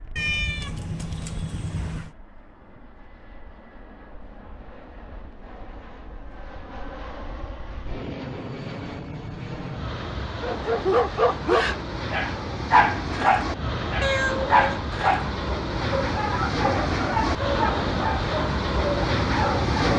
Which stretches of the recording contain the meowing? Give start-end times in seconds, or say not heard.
0.1-2.1, 14.0-14.6.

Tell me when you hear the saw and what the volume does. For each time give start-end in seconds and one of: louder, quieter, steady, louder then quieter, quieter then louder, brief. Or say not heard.
not heard.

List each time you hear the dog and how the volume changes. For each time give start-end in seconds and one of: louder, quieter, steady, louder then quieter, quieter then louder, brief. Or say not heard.
10.4-19.9 quieter.